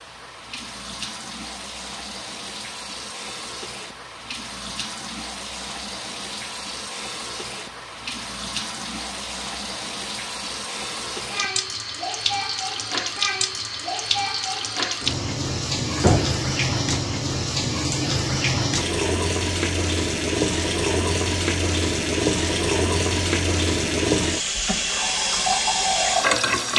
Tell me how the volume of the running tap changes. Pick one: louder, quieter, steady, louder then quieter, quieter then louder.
louder.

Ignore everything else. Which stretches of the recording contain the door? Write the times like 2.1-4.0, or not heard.
15.9-16.4.